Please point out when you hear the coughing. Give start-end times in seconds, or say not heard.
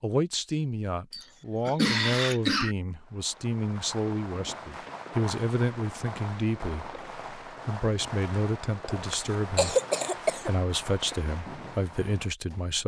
1.1-2.8, 9.1-10.6.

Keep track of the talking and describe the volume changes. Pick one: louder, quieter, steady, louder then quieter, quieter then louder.
steady.